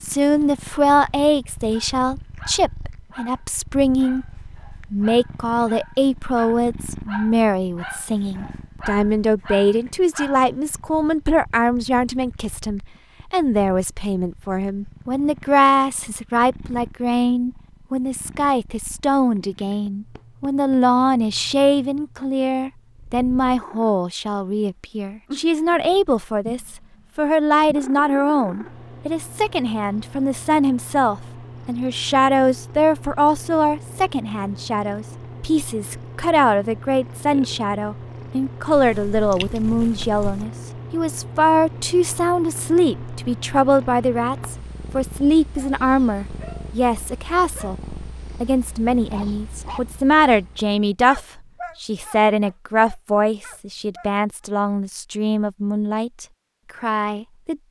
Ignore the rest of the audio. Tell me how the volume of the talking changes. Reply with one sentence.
The volume of the talking stays about the same.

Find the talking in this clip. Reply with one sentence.
You can hear the talking from 0.0 to 4.2 s and from 4.9 to 57.6 s.